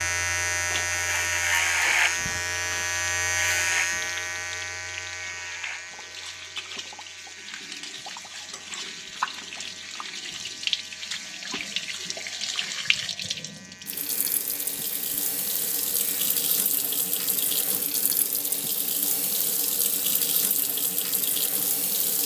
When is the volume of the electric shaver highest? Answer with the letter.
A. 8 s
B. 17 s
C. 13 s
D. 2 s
D.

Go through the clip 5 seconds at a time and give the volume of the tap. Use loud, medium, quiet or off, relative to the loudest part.
medium, medium, loud, loud, loud.